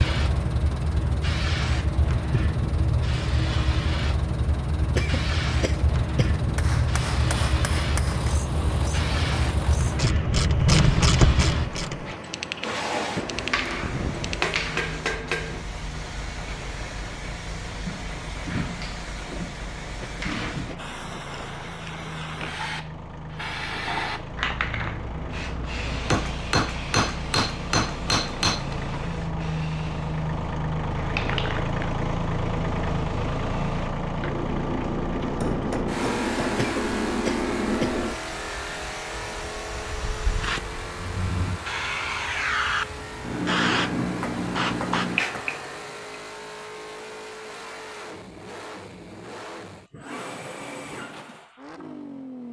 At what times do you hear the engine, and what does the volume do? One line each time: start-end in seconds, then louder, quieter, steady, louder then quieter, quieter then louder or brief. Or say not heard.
0.1-52.4 louder then quieter.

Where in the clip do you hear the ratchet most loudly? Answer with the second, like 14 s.
11 s.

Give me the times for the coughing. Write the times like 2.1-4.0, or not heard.
5.0-6.4, 20.0-20.9, 36.5-38.0.